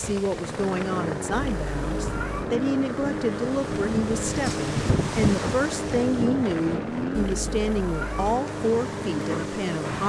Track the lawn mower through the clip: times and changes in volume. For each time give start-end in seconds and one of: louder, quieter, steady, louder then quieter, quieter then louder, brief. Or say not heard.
0.0-10.0 steady.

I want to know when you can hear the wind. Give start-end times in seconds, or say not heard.
0.0-10.0.